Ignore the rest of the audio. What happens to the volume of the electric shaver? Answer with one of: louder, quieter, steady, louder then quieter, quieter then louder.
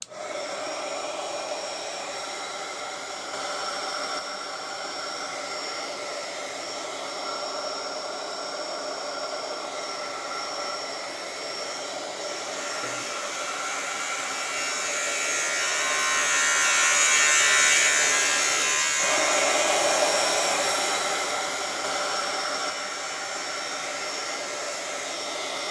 louder then quieter.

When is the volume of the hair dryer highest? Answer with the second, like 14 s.
20 s.